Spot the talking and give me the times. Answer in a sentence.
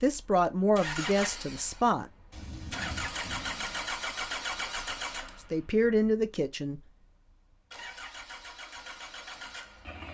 You can hear the talking from 0.0 to 2.0 s and from 5.5 to 6.8 s.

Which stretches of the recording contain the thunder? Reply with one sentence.
The thunder can be heard from 2.3 to 3.9 s.